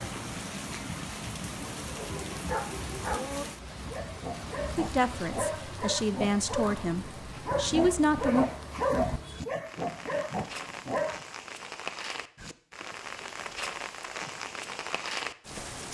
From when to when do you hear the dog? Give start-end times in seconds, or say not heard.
1.9-11.2.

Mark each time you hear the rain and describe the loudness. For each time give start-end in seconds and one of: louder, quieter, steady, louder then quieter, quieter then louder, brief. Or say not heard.
0.0-15.8 quieter then louder.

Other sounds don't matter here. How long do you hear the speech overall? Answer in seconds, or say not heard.
4 s.